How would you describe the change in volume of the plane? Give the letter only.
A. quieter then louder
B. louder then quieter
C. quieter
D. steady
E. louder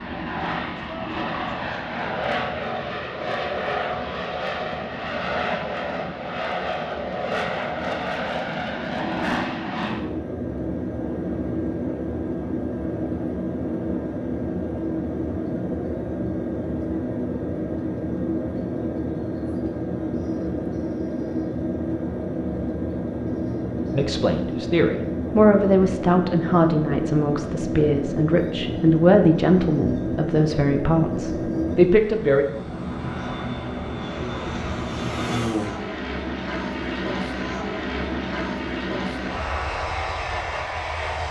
D.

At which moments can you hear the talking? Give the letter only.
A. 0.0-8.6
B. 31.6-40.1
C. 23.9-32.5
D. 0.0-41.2
C.